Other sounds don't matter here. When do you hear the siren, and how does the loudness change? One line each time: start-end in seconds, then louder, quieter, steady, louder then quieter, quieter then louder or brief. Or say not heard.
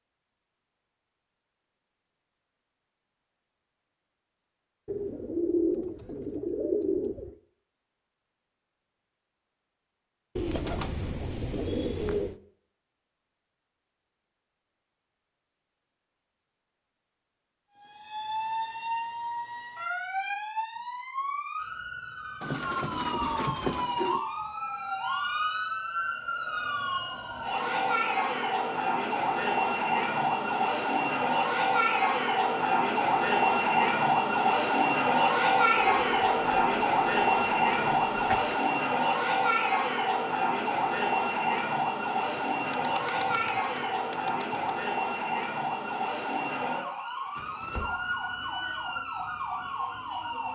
17.8-50.5 louder then quieter.